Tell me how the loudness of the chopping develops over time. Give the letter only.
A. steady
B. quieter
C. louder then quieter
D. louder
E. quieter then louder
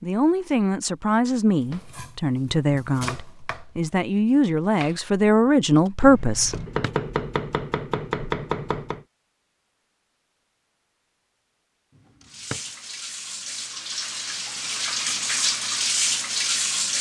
E.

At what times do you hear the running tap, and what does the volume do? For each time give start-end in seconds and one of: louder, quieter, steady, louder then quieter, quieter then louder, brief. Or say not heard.
12.2-16.9 louder.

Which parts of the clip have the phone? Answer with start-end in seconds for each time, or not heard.
not heard.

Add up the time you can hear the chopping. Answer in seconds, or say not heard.
7 s.